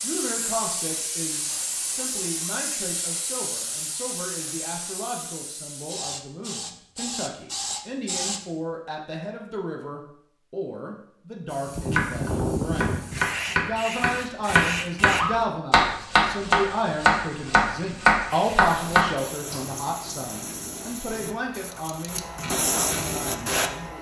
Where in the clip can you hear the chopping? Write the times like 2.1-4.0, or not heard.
11.9-19.6.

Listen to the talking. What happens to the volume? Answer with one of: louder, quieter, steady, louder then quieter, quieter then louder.
louder then quieter.